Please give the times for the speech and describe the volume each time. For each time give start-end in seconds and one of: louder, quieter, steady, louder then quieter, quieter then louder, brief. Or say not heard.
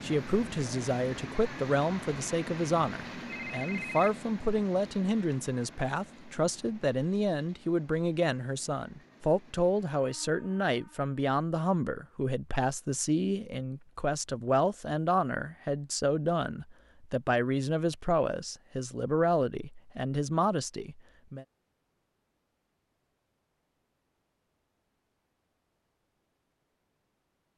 0.0-21.4 steady.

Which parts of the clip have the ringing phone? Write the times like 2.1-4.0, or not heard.
3.2-4.2.